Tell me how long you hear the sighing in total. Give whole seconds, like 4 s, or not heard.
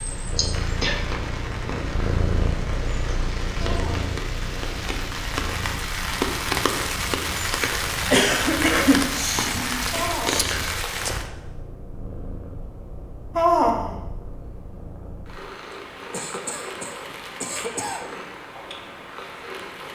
2 s.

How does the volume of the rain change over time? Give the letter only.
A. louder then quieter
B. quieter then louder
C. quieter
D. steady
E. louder
E.